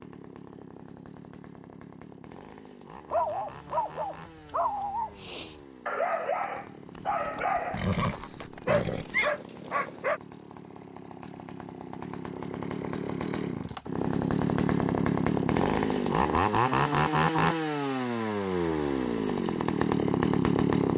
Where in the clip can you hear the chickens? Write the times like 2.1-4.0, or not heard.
not heard.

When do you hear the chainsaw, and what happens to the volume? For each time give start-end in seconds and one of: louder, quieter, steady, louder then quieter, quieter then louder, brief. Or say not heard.
0.0-20.9 louder.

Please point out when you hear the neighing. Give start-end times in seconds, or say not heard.
7.0-9.3.